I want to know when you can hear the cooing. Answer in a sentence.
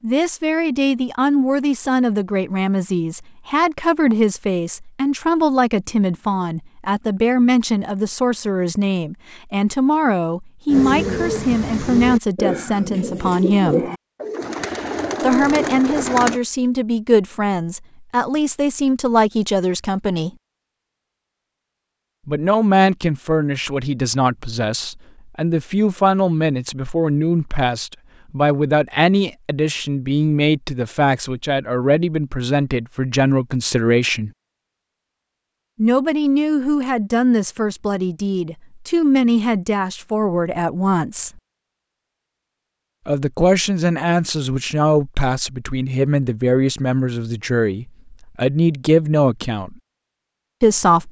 The cooing can be heard from 10.7 to 16.4 s.